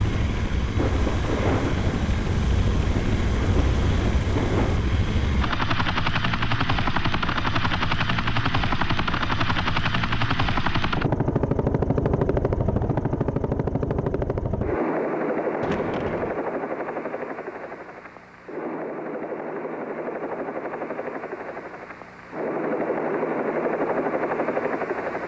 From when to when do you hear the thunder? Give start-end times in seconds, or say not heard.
0.8-4.8, 15.6-16.4.